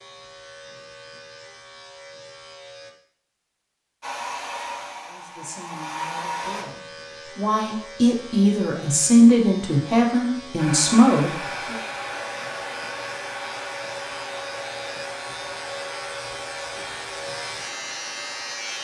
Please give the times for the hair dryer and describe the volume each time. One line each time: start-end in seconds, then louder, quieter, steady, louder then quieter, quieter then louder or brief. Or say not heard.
4.0-6.7 brief
10.6-18.7 quieter.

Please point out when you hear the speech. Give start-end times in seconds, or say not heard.
5.0-11.8.